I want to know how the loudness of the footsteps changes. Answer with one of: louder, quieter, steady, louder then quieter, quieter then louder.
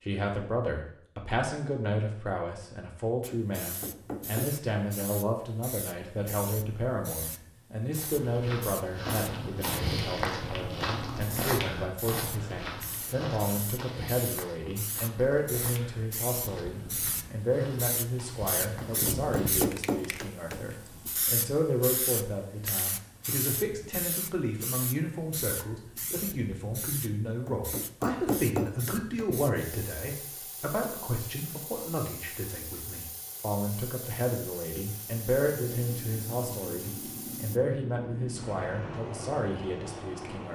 quieter.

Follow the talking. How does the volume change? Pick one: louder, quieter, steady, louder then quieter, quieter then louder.
steady.